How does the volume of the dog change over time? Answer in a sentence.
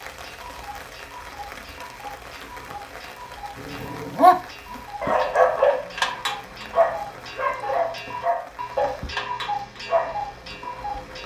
The volume of the dog goes down.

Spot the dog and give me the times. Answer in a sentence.
You can hear the dog from 3.5 to 10.3 s.